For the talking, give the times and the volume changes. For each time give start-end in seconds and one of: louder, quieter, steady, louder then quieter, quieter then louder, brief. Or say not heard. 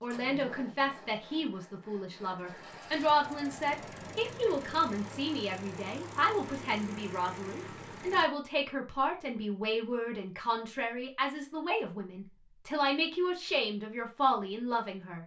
0.0-15.2 steady.